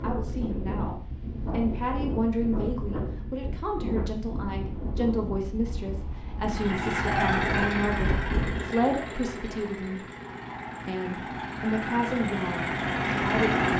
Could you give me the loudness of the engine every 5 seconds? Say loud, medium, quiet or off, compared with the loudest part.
off, loud, loud.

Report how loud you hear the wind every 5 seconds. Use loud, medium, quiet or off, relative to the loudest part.
loud, loud, off.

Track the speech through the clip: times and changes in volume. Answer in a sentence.
You can hear the speech from 0.0 to 10.1 s, at a steady volume; and briefly from 10.8 to 13.5 s.